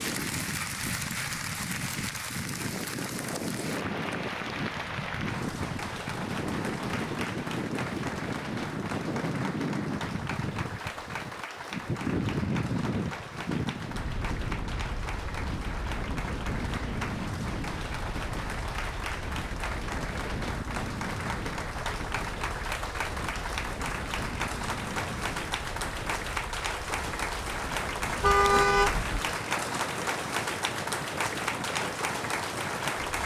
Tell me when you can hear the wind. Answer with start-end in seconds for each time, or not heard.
0.0-33.2.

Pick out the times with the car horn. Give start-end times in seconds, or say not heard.
28.2-29.2.